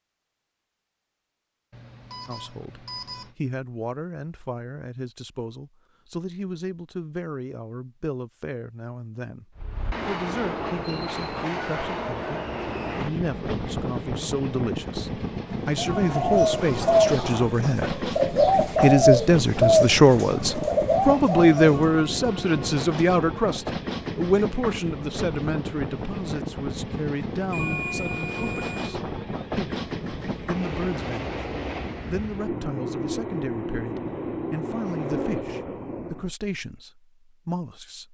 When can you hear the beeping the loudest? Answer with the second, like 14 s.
28 s.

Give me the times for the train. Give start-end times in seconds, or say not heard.
9.6-36.3.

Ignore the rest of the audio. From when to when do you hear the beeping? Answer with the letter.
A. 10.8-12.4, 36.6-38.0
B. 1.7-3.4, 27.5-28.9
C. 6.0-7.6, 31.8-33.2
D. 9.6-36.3
B.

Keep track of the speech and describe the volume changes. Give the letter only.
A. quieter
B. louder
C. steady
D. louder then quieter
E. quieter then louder
D.